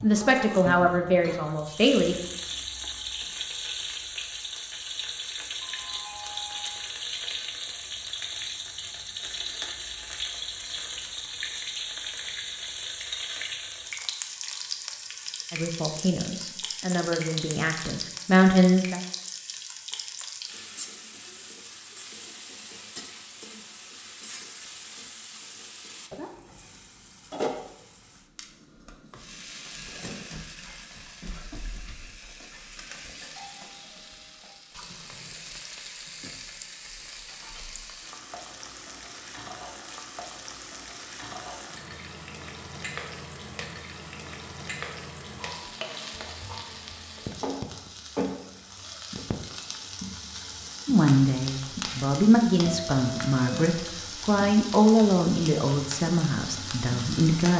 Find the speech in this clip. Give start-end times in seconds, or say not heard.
0.0-2.1, 15.5-18.9, 50.9-57.5.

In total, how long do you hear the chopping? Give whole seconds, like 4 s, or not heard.
not heard.